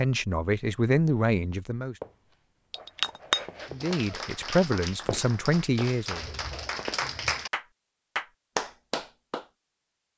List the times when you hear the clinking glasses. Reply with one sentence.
The clinking glasses can be heard from 2.7 to 3.9 s.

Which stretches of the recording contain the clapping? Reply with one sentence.
The clapping can be heard from 3.5 to 9.4 s.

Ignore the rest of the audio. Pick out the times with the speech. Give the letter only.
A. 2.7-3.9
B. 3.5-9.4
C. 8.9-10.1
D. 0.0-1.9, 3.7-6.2
D.